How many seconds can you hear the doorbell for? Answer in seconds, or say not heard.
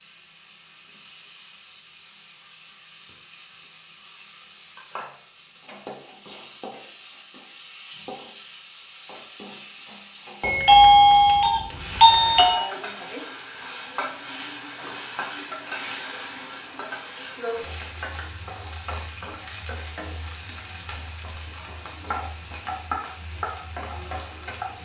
2 s.